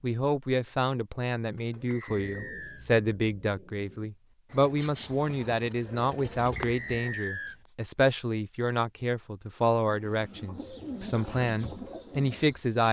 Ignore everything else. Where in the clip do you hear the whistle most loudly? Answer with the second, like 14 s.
7 s.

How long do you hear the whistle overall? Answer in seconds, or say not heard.
2 s.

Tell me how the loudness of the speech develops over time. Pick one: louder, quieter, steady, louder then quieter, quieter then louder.
steady.